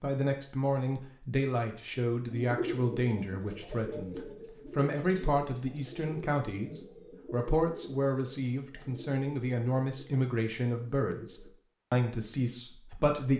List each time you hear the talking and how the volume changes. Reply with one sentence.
The talking can be heard from 0.0 to 13.3 s, at a steady volume.